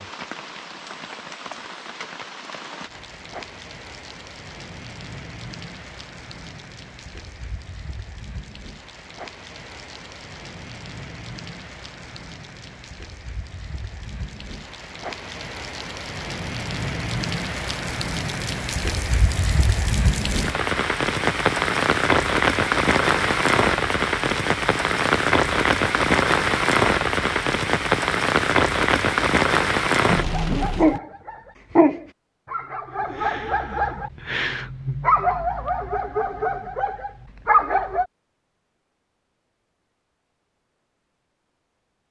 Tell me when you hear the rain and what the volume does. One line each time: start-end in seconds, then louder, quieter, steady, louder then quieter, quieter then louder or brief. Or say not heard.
0.0-31.0 louder.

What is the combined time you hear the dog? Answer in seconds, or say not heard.
8 s.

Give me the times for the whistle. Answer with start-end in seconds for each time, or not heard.
not heard.